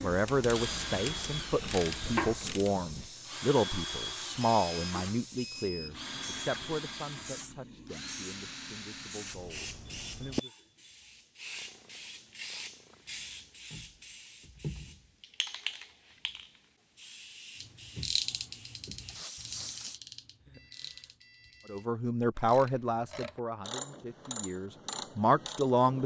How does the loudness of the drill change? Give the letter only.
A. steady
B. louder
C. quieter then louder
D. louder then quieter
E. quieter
E.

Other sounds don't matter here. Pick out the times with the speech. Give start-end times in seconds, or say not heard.
0.0-10.5, 21.7-26.0.